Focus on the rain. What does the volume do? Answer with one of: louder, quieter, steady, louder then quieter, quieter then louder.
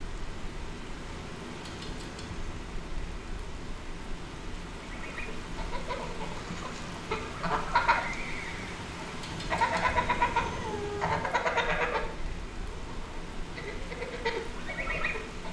steady.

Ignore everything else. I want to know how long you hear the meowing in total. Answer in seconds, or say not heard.
3 s.